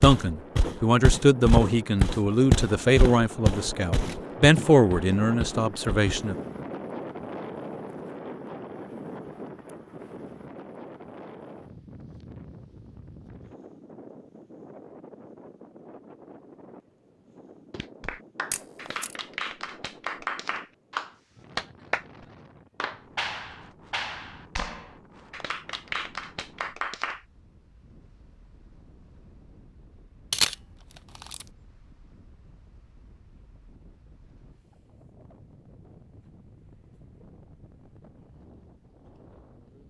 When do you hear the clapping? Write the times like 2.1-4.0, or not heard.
17.7-27.2.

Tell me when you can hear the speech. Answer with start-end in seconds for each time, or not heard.
0.0-6.3.